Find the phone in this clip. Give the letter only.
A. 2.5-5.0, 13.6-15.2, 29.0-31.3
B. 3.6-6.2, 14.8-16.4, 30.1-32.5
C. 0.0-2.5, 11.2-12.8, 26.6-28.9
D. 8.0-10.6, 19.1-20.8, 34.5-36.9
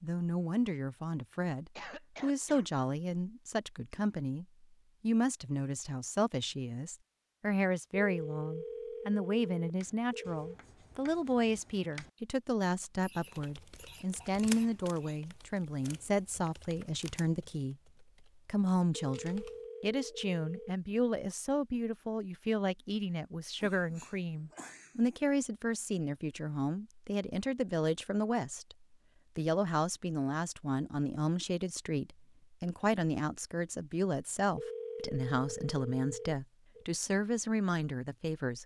D.